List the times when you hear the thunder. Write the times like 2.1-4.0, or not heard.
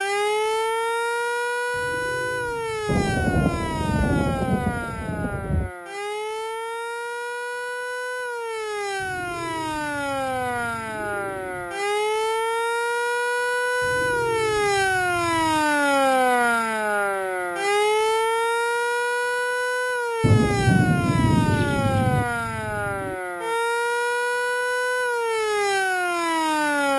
2.9-5.7, 20.2-22.2.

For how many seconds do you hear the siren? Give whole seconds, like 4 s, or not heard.
27 s.